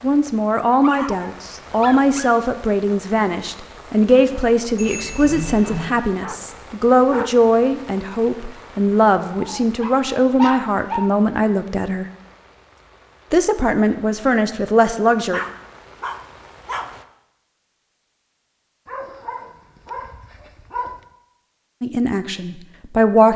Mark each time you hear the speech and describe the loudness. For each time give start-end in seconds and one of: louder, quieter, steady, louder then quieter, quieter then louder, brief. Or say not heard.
0.0-12.1 steady
13.3-15.4 brief
21.8-23.3 brief.